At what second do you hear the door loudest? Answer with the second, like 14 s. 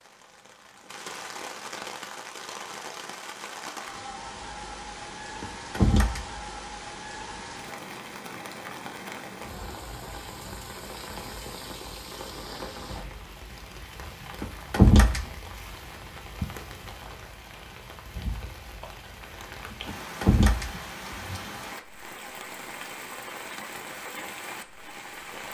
15 s.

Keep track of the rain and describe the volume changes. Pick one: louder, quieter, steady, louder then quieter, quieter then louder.
steady.